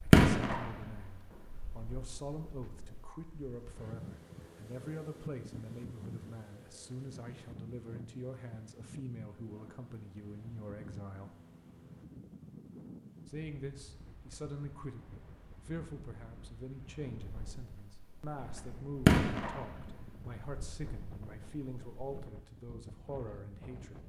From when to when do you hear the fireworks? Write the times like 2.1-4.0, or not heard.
0.0-3.1, 17.2-22.2.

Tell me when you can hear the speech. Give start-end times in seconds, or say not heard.
0.1-11.3, 13.2-24.0.